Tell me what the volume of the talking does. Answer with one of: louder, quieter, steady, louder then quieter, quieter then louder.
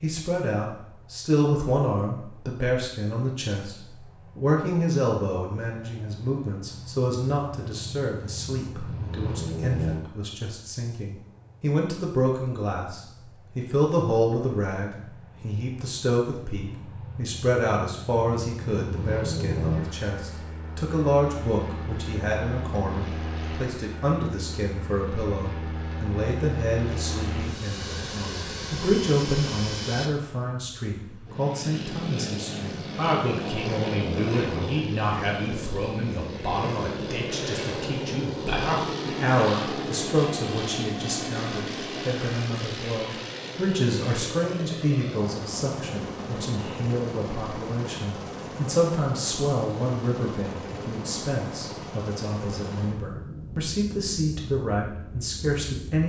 steady.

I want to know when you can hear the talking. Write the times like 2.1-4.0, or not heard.
0.0-56.0.